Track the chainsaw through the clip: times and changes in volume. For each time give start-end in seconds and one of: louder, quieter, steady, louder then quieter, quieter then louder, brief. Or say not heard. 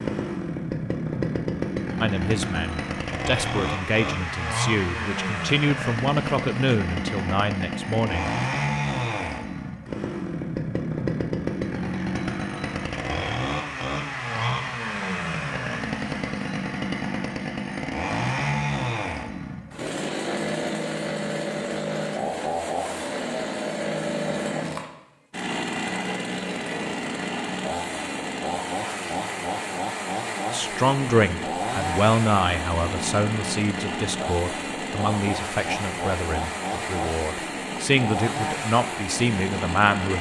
0.0-40.1 steady.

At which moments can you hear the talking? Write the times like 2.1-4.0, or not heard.
2.0-8.3, 30.5-40.1.